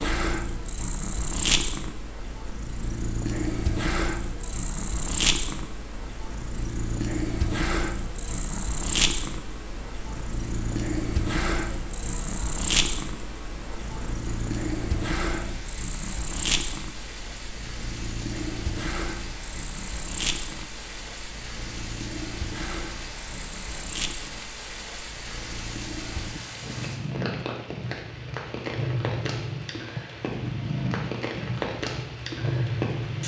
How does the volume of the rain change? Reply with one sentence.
The volume of the rain goes up.